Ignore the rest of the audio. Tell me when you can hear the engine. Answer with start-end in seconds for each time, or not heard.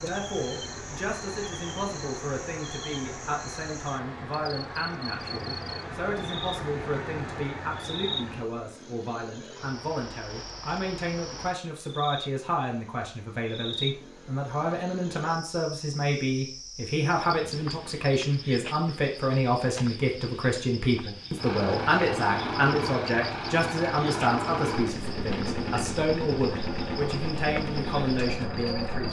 0.0-8.5, 21.4-29.0.